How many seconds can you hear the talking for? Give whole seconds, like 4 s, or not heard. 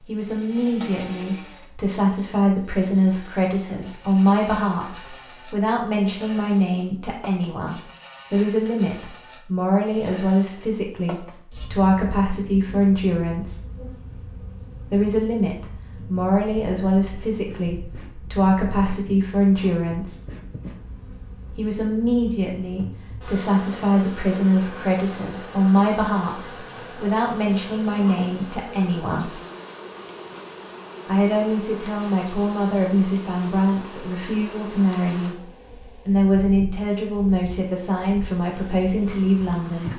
35 s.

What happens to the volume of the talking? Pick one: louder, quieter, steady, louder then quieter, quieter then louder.
steady.